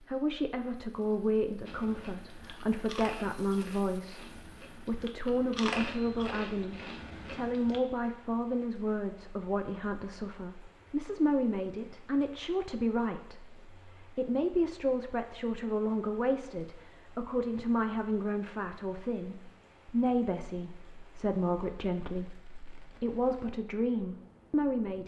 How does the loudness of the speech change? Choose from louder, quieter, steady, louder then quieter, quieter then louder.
steady.